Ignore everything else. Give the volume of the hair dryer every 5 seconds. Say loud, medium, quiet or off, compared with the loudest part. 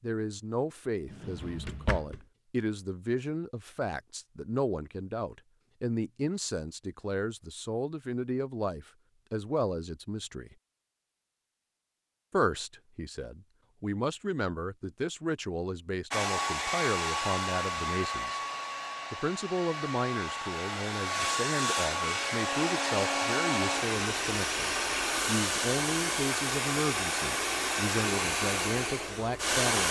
off, off, off, loud, loud, loud.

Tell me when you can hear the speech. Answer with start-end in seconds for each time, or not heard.
0.0-10.6, 12.3-18.4, 19.1-29.8.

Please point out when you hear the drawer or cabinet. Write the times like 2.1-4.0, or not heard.
1.1-2.2.